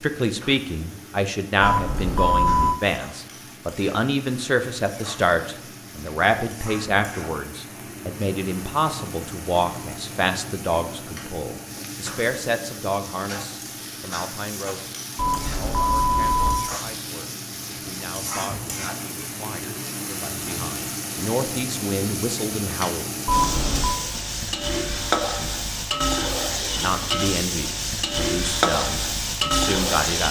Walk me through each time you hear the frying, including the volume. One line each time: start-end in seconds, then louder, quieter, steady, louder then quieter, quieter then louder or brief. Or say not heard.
0.0-30.2 louder.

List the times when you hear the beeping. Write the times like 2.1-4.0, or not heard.
1.6-2.8, 15.2-16.7, 23.2-24.0.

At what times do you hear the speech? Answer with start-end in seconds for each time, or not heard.
0.0-23.1, 26.6-30.2.